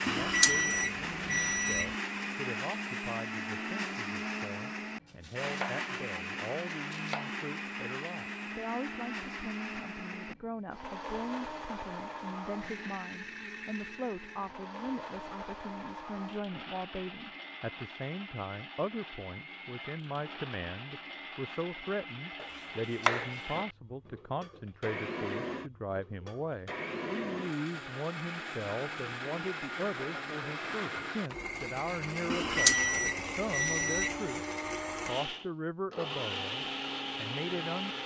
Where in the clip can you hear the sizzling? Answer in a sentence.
The sizzling can't be heard in this clip.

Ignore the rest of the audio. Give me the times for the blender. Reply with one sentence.
You can hear the blender from 0.0 to 38.0 s.